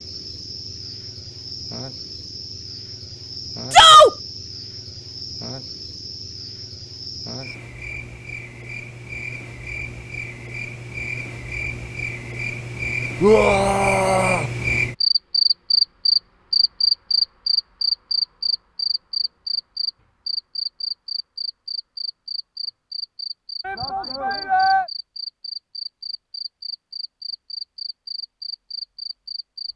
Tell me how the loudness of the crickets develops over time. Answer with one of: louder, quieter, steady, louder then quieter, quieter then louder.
louder then quieter.